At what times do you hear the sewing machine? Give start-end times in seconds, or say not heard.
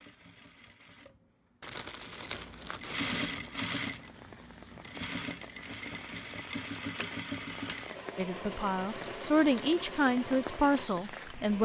0.0-11.6.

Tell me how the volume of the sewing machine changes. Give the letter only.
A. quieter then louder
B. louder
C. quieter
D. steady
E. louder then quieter
E.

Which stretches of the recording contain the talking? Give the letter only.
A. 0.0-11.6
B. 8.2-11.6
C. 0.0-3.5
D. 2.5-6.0
B.